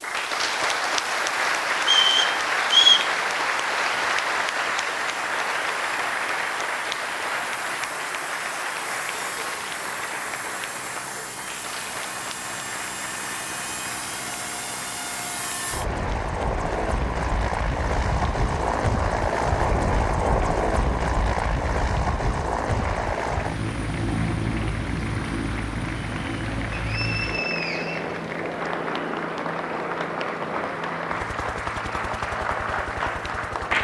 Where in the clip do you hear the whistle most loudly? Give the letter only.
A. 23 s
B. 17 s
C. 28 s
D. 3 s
D.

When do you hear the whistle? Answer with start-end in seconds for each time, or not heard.
1.8-3.1, 26.7-28.7.